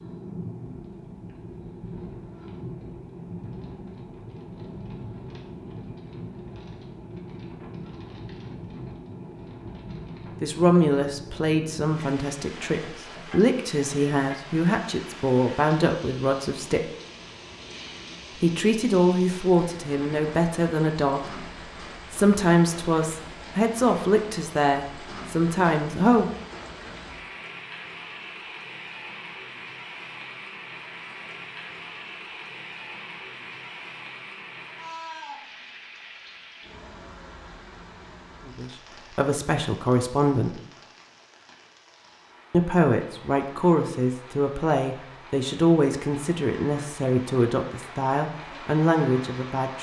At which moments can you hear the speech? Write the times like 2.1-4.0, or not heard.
10.4-16.9, 18.4-21.4, 22.1-26.3, 38.5-40.6, 42.5-49.7.